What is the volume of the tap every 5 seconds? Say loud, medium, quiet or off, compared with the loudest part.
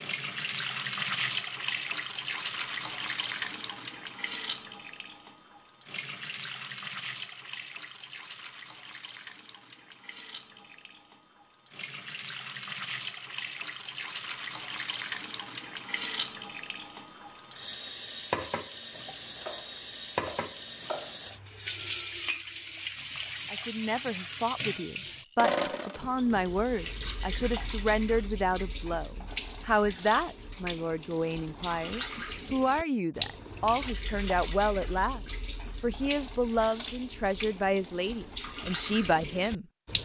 loud, medium, medium, loud, loud, loud, loud, loud.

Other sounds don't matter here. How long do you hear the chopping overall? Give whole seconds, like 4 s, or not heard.
2 s.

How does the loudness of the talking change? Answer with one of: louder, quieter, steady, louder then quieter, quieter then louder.
steady.